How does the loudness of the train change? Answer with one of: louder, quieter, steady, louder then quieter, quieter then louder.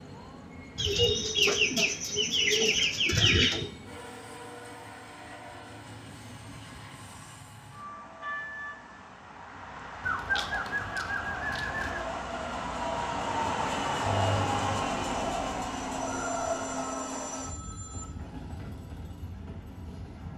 louder then quieter.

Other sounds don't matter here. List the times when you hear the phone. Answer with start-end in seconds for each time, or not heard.
16.1-18.1.